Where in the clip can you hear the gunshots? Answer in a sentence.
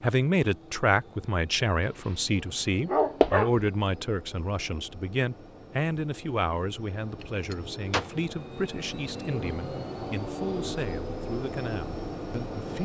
The gunshots can be heard from 7.2 to 8.1 s.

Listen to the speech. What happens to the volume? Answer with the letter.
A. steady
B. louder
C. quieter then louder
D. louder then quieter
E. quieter
E.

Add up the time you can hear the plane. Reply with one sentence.
You can hear the plane for 13 seconds altogether.